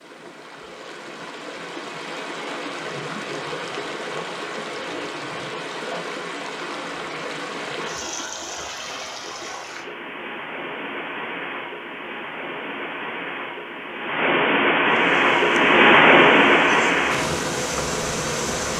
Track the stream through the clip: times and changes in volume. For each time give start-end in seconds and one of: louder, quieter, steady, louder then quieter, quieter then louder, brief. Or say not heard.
0.0-18.7 louder.